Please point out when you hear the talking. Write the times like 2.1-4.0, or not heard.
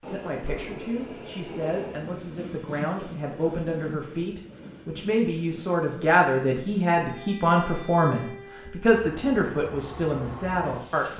0.0-11.1.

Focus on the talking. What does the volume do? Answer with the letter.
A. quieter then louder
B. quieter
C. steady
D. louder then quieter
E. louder
E.